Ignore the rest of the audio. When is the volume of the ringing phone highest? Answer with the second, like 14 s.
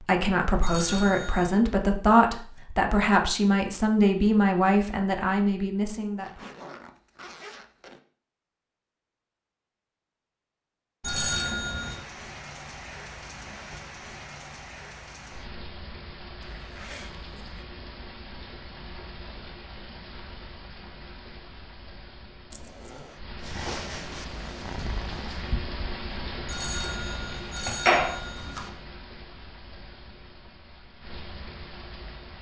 28 s.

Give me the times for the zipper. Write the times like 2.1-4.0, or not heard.
6.2-8.0, 16.4-17.6, 22.5-23.2.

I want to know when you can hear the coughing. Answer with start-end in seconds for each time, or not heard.
not heard.